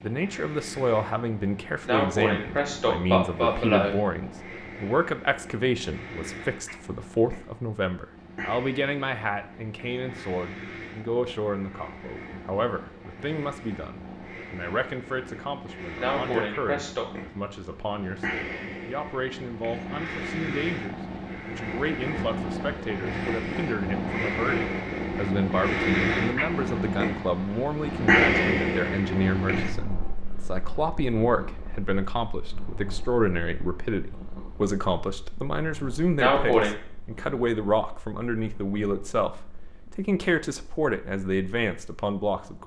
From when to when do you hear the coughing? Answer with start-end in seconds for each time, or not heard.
1.9-4.0, 15.9-17.1, 36.1-36.8.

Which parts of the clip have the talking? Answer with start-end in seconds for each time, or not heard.
0.0-39.3, 39.9-42.6.